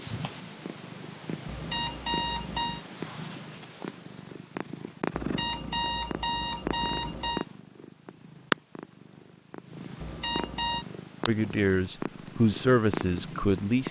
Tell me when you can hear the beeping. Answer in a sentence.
The beeping can be heard from 1.4 to 2.9 s, from 5.2 to 7.5 s and from 10.0 to 10.8 s.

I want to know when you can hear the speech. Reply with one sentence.
The speech can be heard from 11.2 to 13.8 s.